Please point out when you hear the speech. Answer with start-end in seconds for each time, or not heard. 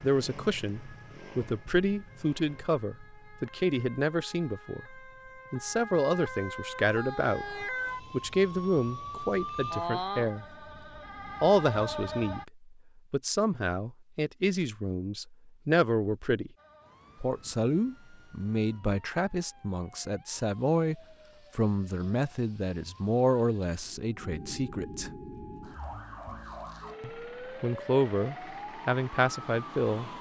0.0-10.6, 11.4-16.5, 17.2-25.1, 27.0-30.1.